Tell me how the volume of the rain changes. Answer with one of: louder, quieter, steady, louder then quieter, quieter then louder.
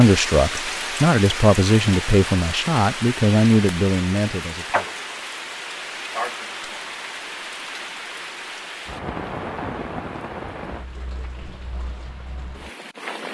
quieter.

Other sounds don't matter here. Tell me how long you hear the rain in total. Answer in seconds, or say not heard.
13 s.